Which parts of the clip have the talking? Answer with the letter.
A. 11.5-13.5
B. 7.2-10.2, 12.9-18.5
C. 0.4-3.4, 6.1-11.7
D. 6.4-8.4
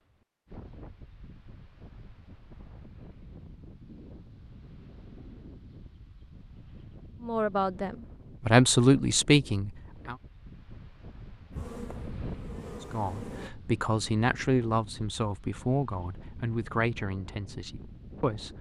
B.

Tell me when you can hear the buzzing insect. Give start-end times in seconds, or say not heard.
11.5-13.5.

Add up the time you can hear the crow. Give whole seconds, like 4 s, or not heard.
not heard.